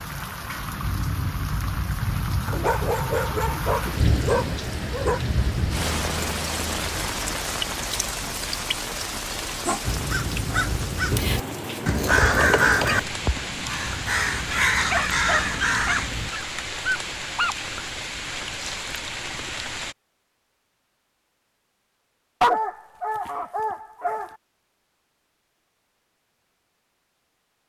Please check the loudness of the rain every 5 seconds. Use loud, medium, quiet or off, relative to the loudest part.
loud, loud, loud, loud, off, off.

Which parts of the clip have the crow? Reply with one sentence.
You can hear the crow from 9.8 to 16.3 s.